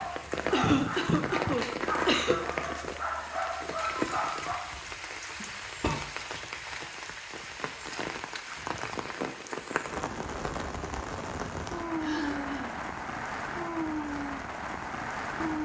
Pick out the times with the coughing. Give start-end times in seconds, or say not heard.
0.5-2.4, 5.4-6.0, 11.9-12.8.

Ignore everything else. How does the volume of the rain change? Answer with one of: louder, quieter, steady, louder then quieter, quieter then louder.
steady.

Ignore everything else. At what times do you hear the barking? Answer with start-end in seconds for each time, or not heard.
0.0-4.8.